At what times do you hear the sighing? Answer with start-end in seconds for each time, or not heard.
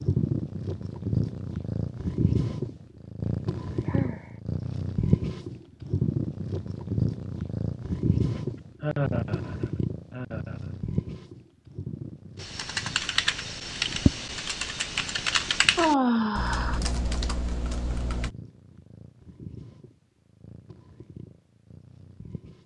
3.9-4.3, 8.3-10.7, 15.8-16.8.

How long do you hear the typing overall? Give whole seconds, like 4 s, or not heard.
6 s.